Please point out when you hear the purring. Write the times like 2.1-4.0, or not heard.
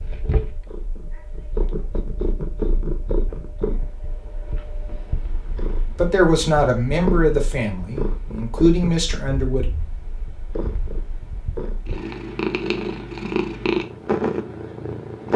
0.0-15.3.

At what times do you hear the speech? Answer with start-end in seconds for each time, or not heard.
6.0-9.7.